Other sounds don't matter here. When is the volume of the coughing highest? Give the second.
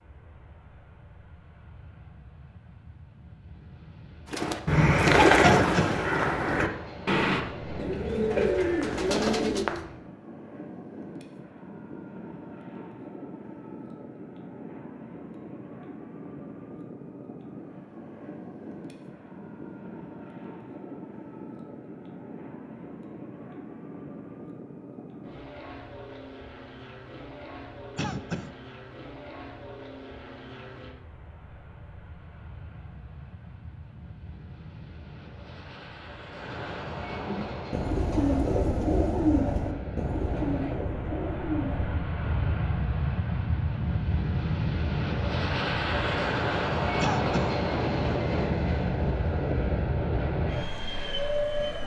6 s.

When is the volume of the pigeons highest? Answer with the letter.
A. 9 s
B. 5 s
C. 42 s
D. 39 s
B.